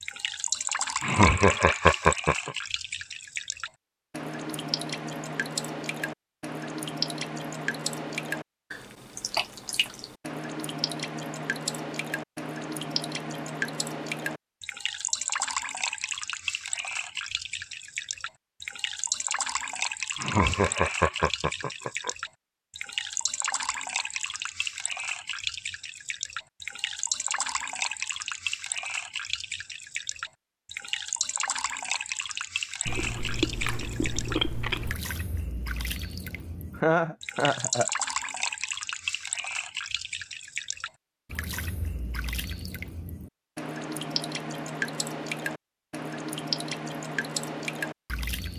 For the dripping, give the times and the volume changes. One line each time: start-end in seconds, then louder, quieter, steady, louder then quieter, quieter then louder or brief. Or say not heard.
0.0-48.5 steady.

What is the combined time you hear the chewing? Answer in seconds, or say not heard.
2 s.